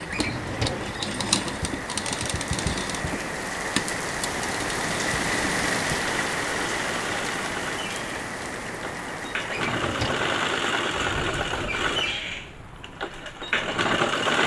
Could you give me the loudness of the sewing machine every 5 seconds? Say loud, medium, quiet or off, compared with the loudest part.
medium, medium, loud.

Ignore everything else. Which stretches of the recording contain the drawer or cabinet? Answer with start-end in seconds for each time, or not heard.
0.1-0.9, 9.5-10.3.